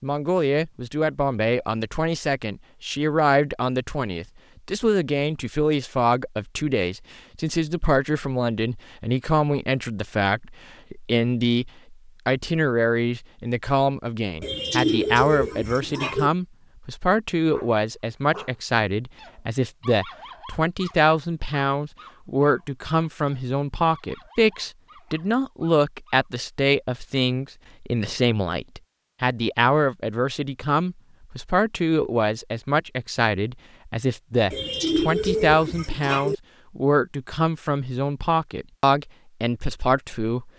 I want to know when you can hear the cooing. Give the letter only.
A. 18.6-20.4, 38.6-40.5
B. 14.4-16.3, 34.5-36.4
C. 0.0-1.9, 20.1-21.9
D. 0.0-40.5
B.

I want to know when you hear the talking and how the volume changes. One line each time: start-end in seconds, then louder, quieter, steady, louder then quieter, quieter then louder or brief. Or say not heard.
0.0-40.5 steady.